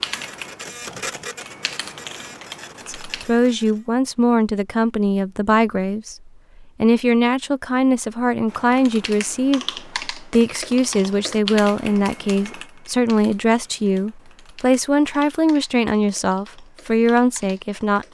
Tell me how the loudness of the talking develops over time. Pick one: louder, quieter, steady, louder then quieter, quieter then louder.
steady.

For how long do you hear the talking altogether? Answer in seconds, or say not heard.
15 s.